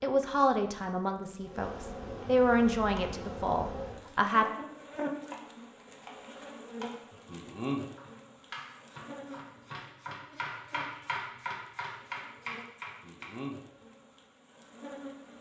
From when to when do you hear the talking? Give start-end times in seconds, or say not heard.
0.0-4.5.